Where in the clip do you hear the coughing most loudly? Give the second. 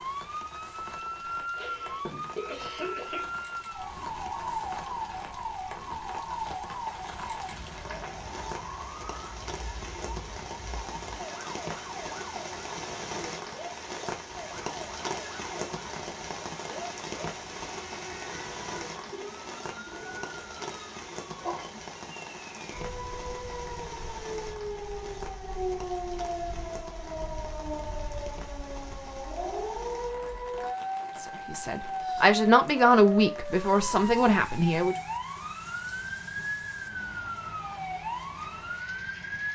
3 s.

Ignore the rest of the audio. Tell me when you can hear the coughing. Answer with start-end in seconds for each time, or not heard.
1.6-3.4.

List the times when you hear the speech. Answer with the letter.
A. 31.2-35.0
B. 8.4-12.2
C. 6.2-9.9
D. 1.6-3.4
A.